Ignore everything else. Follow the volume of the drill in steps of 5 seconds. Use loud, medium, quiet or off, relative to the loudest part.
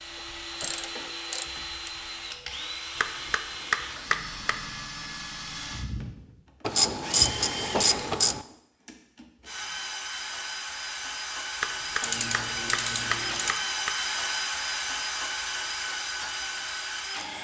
medium, medium, loud, loud.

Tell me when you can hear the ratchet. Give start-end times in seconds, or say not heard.
0.6-1.9, 6.7-8.4, 12.0-13.6.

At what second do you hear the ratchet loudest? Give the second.
7 s.